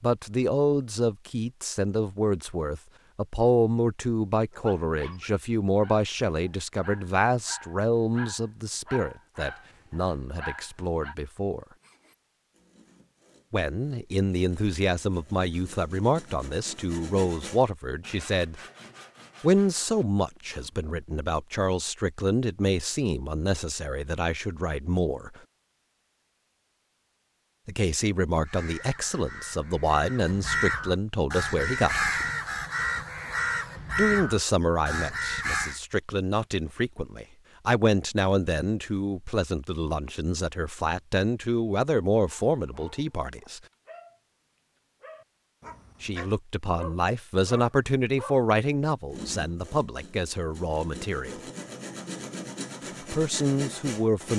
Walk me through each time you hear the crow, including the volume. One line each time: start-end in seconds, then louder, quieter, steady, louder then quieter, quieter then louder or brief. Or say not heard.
28.4-35.8 louder.